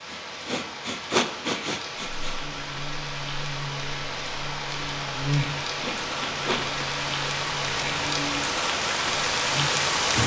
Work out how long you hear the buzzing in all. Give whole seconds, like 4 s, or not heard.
8 s.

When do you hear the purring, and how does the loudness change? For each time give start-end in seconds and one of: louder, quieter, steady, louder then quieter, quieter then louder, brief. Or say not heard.
not heard.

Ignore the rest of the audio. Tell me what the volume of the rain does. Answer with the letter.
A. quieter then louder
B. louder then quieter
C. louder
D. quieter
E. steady
C.